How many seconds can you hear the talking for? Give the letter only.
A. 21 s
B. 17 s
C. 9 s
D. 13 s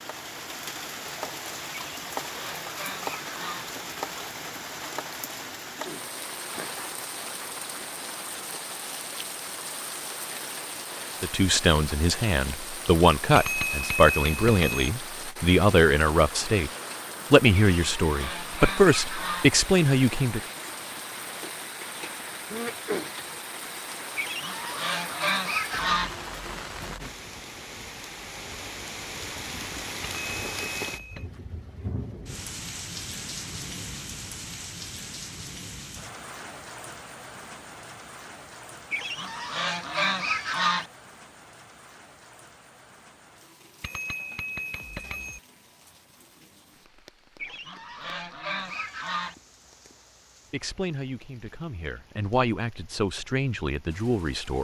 D.